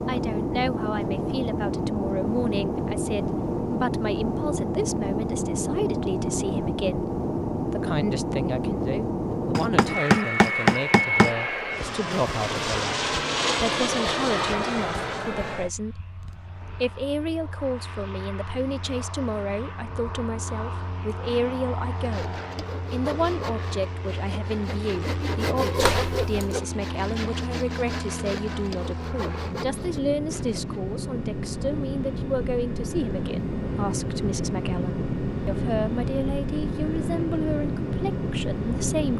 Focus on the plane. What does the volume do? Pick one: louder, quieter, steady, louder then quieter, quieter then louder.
quieter then louder.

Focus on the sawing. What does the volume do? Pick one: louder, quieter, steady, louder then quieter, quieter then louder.
louder then quieter.